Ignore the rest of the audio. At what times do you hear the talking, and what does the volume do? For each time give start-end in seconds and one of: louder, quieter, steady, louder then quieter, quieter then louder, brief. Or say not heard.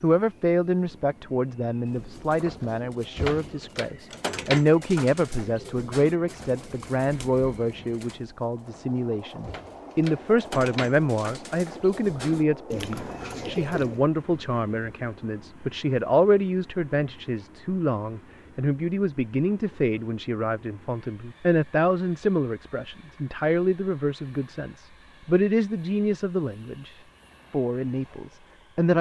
0.0-28.9 steady.